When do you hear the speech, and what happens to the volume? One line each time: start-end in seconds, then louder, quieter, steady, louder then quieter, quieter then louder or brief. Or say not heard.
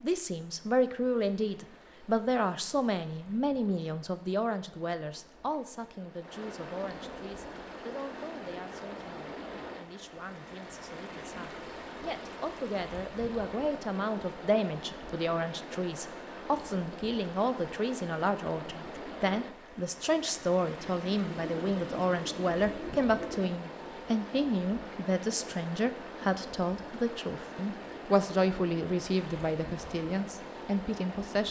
0.0-31.4 quieter then louder.